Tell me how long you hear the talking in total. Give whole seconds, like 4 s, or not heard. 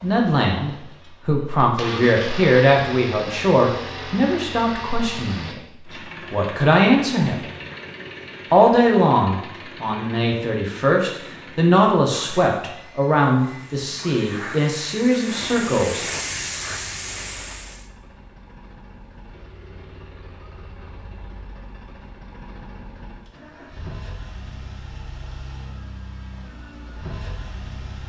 14 s.